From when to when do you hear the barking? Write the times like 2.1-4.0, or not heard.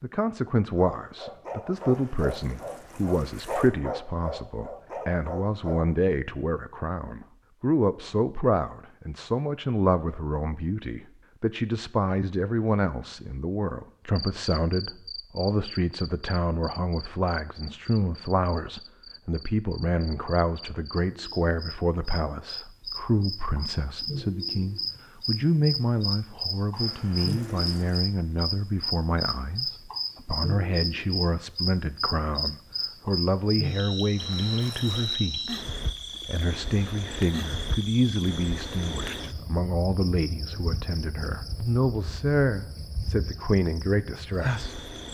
0.8-5.9.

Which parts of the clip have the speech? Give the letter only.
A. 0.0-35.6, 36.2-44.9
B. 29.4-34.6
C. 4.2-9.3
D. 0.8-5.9
A.